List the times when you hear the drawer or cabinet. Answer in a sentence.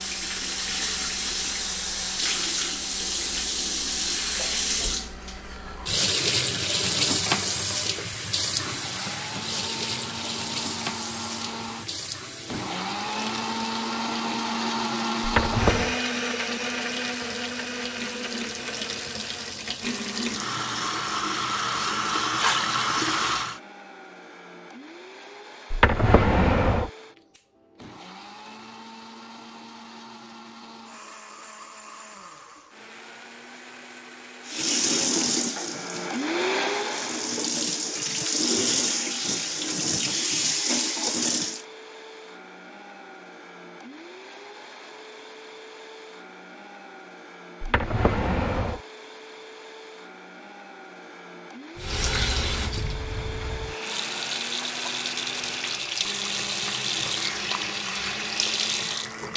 You can hear the drawer or cabinet from 15.2 to 15.9 s, from 25.7 to 26.9 s and from 47.6 to 48.8 s.